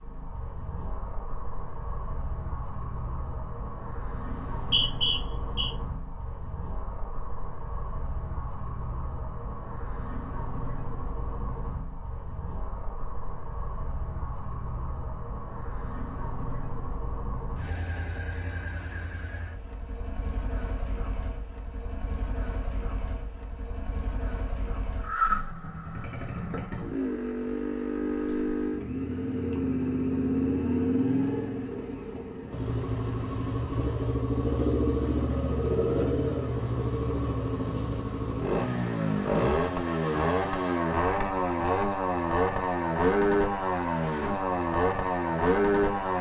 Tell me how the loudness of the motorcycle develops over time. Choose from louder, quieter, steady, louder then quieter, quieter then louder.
louder.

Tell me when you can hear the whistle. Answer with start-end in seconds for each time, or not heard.
4.3-5.7.